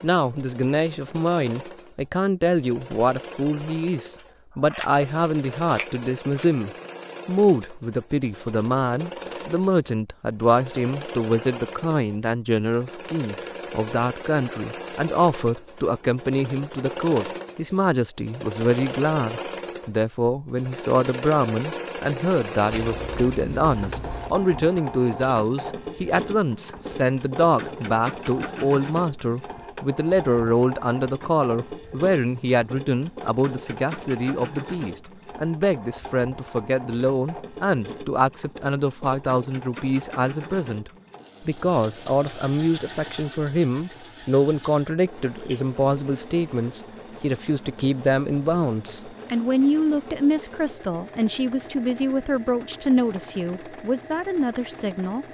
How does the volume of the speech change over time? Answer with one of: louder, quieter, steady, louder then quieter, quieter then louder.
steady.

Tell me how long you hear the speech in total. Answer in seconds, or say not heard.
55 s.